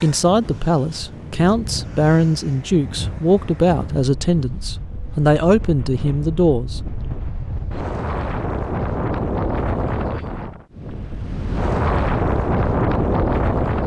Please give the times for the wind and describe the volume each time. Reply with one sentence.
You can hear the wind from 0.0 to 13.8 s, getting louder.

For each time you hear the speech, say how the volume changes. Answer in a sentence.
You can hear the speech from 0.0 to 6.8 s, at a steady volume.